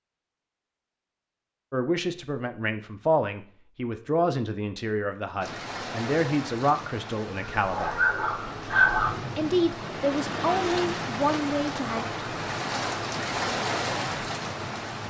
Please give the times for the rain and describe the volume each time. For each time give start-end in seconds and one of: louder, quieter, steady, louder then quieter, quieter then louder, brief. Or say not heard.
5.4-15.0 louder.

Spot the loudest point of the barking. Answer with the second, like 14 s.
9 s.